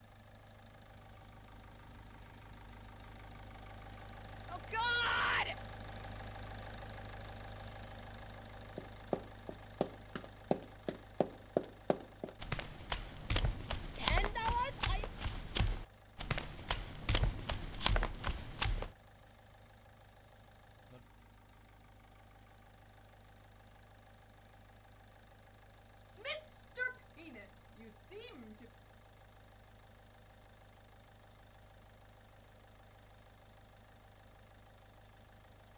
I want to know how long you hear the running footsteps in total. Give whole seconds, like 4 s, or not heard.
10 s.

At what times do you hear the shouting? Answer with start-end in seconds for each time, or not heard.
4.5-5.5, 13.9-15.1, 26.2-28.6.